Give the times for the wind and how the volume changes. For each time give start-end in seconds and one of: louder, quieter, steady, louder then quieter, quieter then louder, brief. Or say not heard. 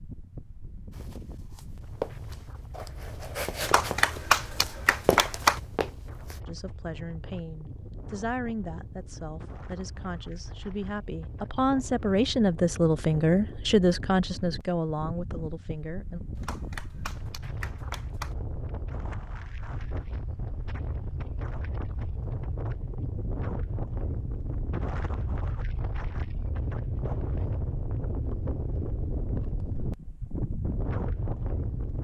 0.0-31.9 louder.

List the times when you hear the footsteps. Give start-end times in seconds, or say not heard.
0.9-6.4.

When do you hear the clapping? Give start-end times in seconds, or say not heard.
3.6-5.6, 16.4-18.4.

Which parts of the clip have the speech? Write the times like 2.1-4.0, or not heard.
6.5-16.2.